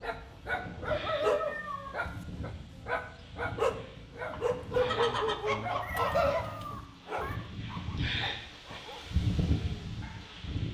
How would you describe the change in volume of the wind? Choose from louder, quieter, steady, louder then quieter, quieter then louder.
louder.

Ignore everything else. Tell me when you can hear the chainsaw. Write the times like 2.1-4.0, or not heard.
not heard.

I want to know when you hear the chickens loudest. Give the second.
6 s.